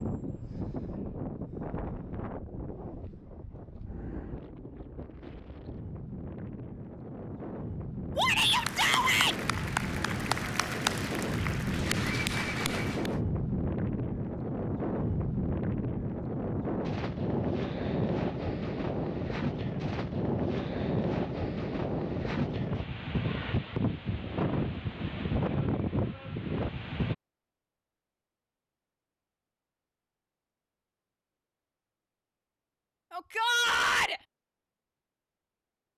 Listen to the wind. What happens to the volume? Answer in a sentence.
The volume of the wind goes up.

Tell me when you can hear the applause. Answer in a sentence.
You can hear the applause from 8.4 to 13.2 s.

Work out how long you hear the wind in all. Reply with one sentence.
The wind can be heard for 27 seconds in total.